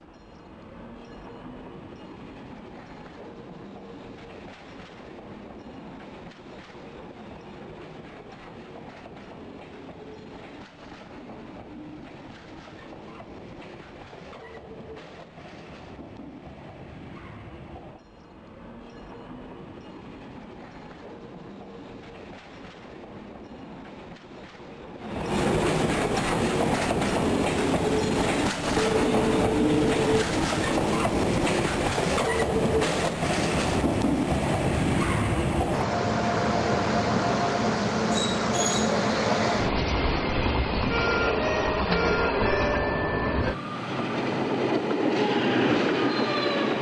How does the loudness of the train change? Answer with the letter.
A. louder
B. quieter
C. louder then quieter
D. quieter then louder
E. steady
A.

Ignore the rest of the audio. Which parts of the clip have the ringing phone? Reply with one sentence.
You can hear the ringing phone from 28.8 to 30.2 s.